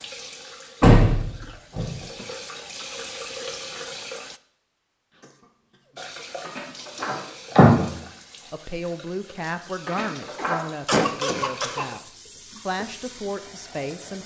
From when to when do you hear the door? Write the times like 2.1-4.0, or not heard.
0.8-2.2, 6.5-7.8, 9.8-10.6.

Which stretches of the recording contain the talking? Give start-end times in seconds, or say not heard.
8.5-14.2.